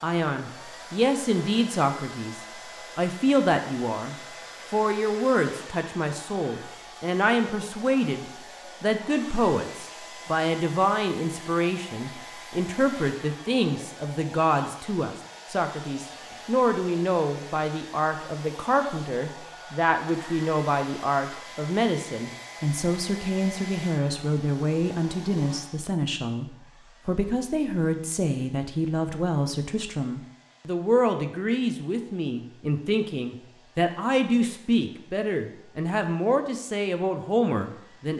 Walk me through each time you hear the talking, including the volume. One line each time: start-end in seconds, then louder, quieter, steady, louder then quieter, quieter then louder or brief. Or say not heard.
0.0-38.1 steady.